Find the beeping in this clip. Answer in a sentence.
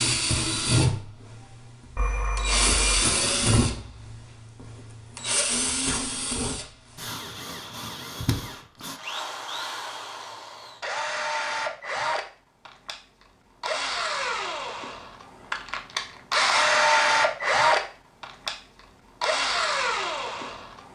You can hear the beeping from 1.9 to 3.0 s.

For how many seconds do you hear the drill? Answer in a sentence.
The drill can be heard for 21 seconds in total.